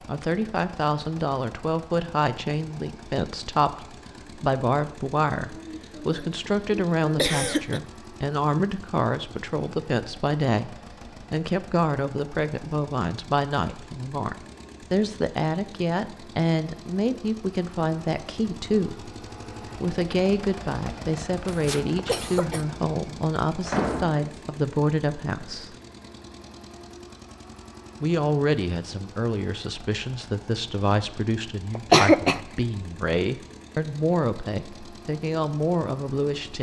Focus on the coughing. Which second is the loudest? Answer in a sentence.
The volume of the coughing peaks at 32 seconds.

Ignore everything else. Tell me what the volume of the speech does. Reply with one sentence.
The volume of the speech stays about the same.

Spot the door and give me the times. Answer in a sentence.
The door can be heard from 23.6 to 24.3 s.